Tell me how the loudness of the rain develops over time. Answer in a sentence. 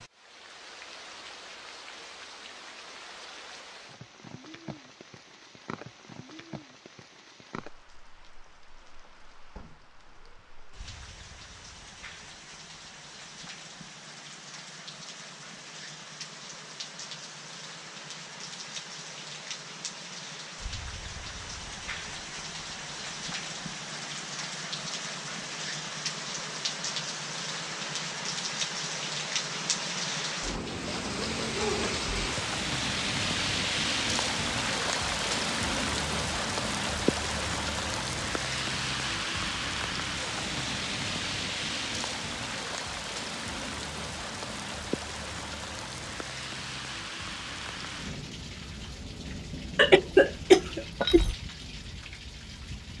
The loudness of the rain goes up, then down.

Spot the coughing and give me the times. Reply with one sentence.
You can hear the coughing from 49.8 to 51.4 s.